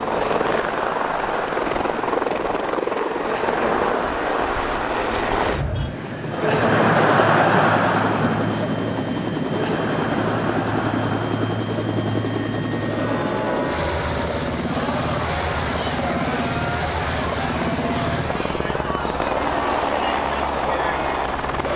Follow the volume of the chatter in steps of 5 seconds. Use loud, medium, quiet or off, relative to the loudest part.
medium, loud, medium, medium, medium.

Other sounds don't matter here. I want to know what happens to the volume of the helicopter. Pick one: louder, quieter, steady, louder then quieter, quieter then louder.
steady.